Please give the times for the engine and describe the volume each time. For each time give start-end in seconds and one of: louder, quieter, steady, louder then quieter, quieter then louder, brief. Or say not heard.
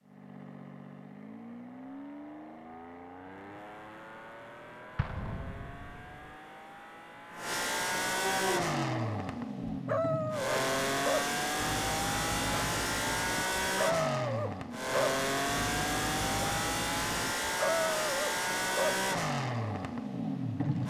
0.0-20.8 louder.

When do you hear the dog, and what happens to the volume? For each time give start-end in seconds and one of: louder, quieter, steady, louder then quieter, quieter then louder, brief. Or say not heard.
8.2-18.9 steady.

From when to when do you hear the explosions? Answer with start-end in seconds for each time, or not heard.
5.0-6.3.